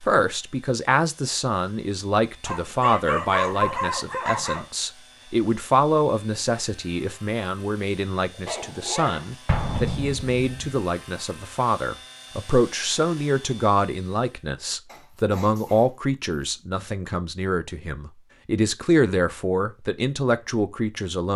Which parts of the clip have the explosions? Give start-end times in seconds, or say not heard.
9.4-10.8.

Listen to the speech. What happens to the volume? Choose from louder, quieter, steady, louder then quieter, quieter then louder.
steady.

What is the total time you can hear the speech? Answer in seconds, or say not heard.
21 s.